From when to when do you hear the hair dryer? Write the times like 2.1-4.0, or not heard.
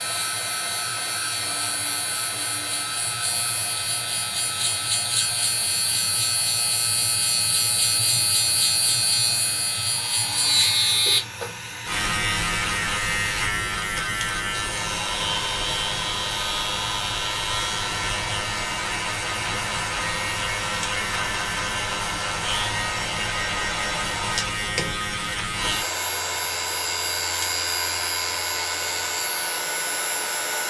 0.0-30.6.